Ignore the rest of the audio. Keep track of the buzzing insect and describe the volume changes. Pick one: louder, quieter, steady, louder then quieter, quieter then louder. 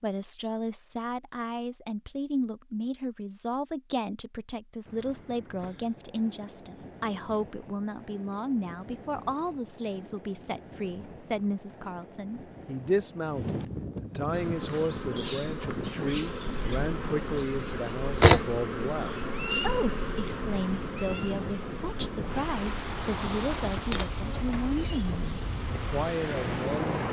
louder then quieter.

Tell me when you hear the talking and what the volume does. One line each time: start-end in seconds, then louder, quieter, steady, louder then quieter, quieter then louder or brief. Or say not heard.
0.0-27.0 steady.